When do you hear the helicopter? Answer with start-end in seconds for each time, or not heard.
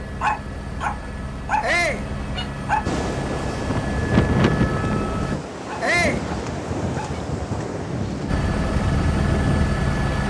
0.0-5.3, 8.2-10.2.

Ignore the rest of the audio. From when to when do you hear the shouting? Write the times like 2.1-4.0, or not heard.
1.6-2.0, 5.8-6.2.